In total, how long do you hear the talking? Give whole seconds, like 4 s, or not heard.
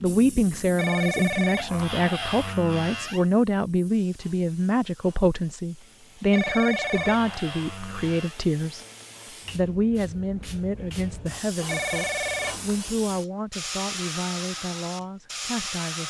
15 s.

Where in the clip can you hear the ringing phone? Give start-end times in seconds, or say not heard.
0.8-1.8, 6.3-7.3, 11.7-12.7.